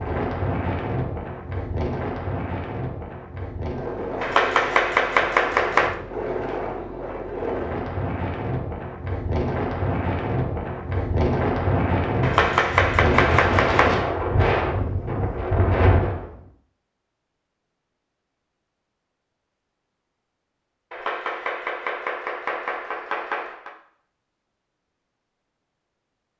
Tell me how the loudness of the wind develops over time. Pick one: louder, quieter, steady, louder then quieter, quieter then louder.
louder.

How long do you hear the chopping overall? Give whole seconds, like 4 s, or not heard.
6 s.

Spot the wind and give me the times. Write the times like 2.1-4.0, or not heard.
0.0-16.4.